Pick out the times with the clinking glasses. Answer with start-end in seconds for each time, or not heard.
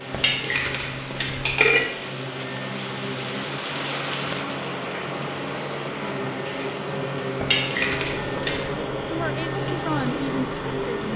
0.1-1.9, 7.4-8.7.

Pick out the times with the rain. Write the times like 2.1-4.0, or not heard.
0.0-11.1.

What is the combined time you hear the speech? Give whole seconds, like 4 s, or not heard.
2 s.